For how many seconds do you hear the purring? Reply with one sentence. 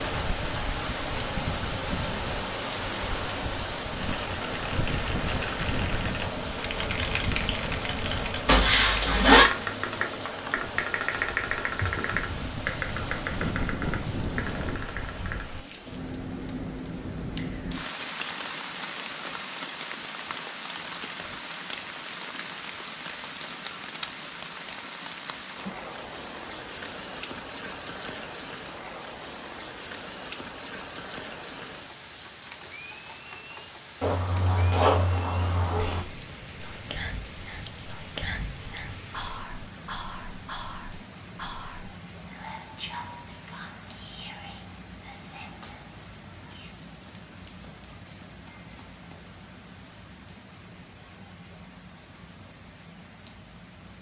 The purring can't be heard in this clip.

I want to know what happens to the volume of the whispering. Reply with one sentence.
The volume of the whispering goes down.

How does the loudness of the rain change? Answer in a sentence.
The loudness of the rain goes down.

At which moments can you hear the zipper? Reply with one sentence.
The zipper can be heard from 8.4 to 9.4 s and from 34.0 to 36.0 s.